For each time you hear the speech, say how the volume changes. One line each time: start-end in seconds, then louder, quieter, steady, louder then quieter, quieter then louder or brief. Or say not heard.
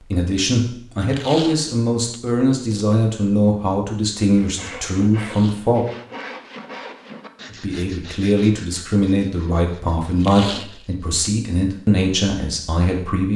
0.0-5.8 steady
7.5-13.3 steady.